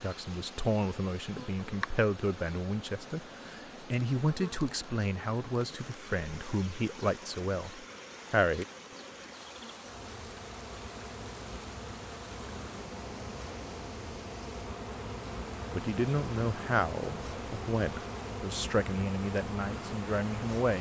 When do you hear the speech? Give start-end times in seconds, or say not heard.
0.0-8.7, 15.7-20.7.